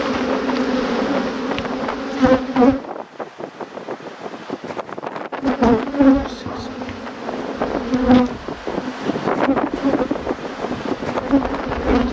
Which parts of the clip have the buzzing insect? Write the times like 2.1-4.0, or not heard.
0.0-2.8, 5.4-12.0.